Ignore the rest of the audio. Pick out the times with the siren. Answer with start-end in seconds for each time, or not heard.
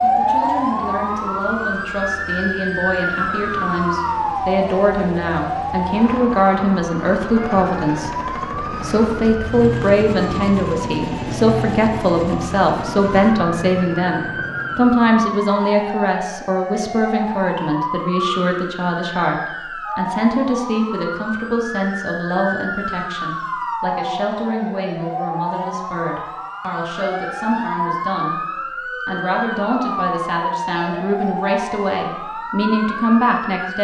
0.0-33.7.